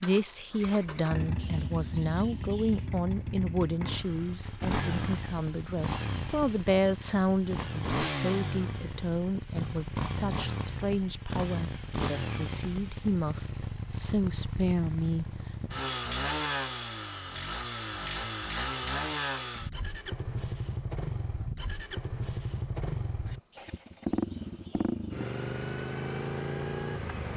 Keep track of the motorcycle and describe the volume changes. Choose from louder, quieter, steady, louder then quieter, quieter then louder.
steady.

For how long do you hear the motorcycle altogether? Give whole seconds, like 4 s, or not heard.
27 s.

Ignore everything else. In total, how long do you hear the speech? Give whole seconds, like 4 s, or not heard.
16 s.